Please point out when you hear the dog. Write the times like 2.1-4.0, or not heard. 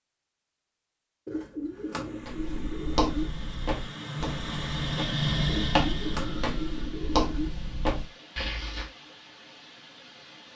not heard.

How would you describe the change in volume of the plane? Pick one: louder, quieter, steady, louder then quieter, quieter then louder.
louder then quieter.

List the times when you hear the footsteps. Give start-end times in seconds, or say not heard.
2.2-8.8.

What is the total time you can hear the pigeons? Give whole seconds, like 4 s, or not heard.
4 s.